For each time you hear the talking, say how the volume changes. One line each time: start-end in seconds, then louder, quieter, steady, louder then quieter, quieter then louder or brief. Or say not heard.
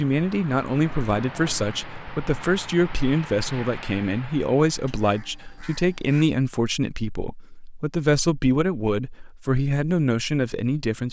0.0-11.0 steady.